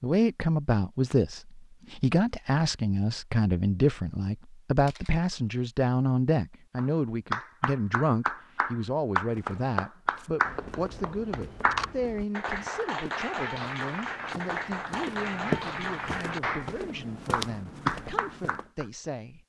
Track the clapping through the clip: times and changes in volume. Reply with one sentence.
You can hear the clapping from 6.8 to 18.9 s, at a steady volume.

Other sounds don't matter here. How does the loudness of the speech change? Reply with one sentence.
The loudness of the speech goes down.